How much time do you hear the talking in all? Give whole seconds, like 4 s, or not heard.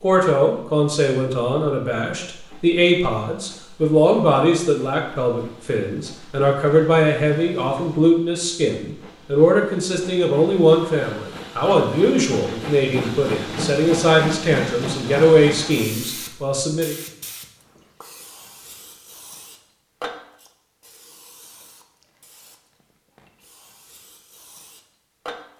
17 s.